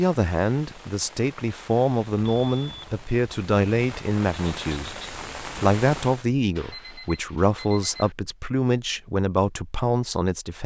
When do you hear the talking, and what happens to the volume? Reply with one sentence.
You can hear the talking from 0.0 to 10.6 s, at a steady volume.